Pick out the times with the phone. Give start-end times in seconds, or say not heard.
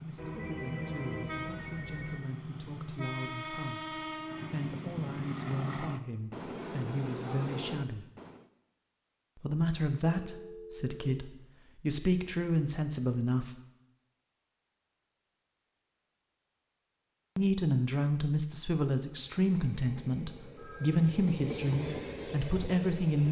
0.1-2.2, 10.2-11.1, 20.6-21.1.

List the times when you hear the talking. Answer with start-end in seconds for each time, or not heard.
0.0-8.1, 9.3-13.5, 17.4-23.2.